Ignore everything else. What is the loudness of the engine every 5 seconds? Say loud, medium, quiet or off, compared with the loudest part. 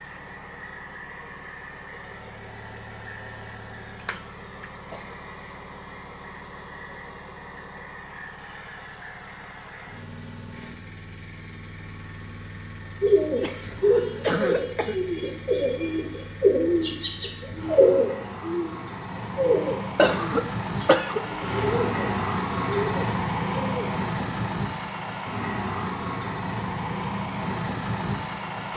quiet, quiet, quiet, medium, loud, loud.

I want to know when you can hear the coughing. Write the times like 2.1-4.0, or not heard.
4.0-5.2, 13.4-15.0, 19.9-21.2.